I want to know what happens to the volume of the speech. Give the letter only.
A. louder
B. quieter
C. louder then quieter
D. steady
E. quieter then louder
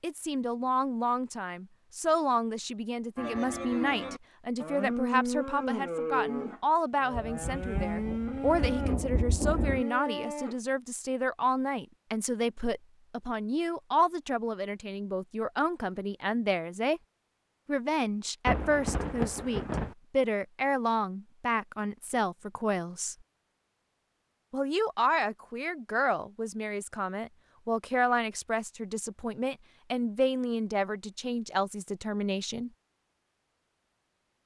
D.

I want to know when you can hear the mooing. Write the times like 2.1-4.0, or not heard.
3.1-10.6.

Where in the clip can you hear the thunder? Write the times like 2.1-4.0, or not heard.
7.1-9.8, 18.4-19.9.